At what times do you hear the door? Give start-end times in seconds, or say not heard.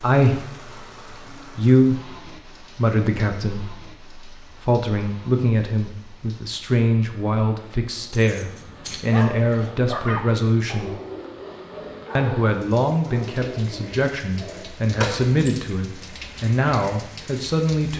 14.9-15.6.